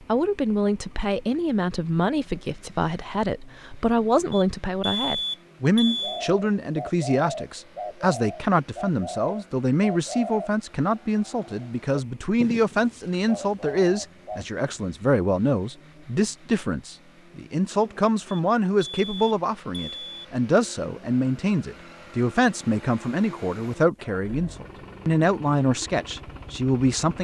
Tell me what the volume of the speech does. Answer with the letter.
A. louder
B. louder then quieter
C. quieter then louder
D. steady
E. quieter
D.